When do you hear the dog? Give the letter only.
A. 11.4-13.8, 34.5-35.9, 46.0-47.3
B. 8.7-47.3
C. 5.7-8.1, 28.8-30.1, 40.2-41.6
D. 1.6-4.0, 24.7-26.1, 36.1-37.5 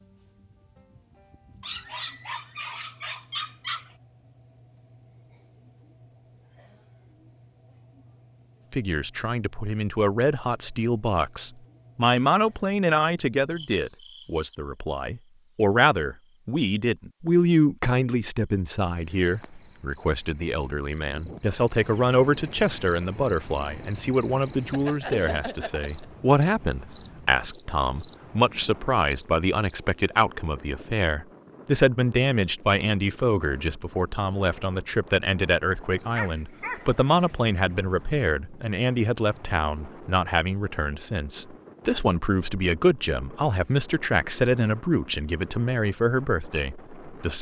D.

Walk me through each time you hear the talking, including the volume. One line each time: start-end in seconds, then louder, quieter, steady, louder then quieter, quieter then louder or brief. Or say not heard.
8.7-47.3 steady.